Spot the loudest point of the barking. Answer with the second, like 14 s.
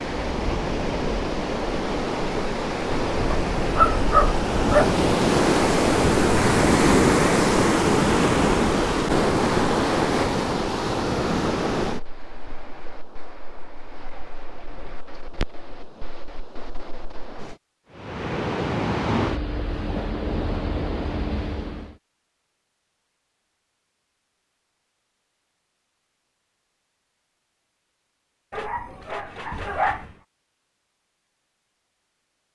4 s.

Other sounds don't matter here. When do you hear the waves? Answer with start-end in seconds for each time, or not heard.
0.0-21.9.